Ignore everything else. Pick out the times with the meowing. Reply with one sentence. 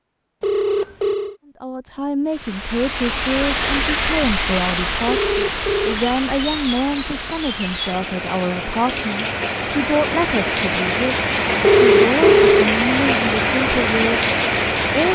The meowing can't be heard in this clip.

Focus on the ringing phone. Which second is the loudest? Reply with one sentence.
The loudest moment of the ringing phone is at 12 seconds.